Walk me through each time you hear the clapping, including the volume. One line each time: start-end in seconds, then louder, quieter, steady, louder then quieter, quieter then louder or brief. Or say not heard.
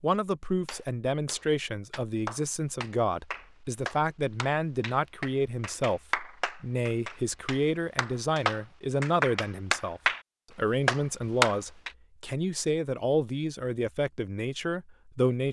0.7-10.2 louder
10.8-11.9 brief.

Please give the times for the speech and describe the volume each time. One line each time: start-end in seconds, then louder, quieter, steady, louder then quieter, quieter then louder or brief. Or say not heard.
0.0-15.4 steady.